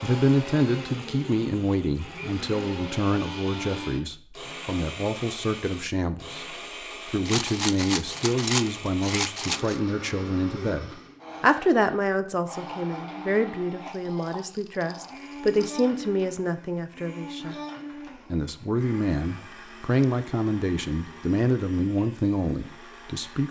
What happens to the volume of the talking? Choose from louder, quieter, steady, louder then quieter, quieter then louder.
steady.